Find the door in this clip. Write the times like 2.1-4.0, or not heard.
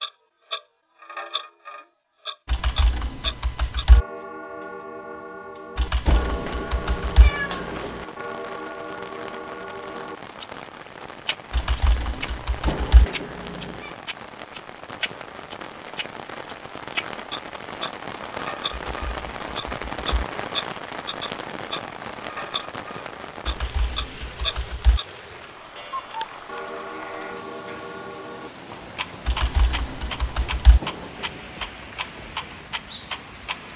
not heard.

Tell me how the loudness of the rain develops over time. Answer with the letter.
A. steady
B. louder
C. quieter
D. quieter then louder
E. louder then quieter
E.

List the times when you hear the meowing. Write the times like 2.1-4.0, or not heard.
6.0-8.1, 12.7-13.9, 30.8-31.4.